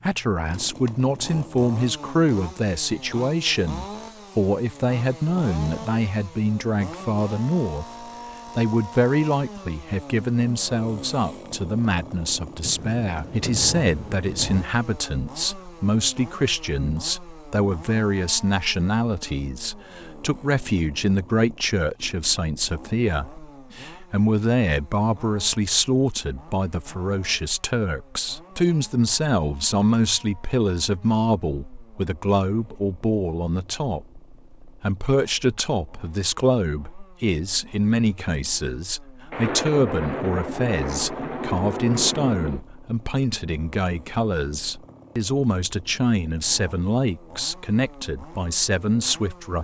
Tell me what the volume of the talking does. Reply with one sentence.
The volume of the talking stays about the same.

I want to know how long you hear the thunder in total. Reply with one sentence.
You can hear the thunder for 5 seconds altogether.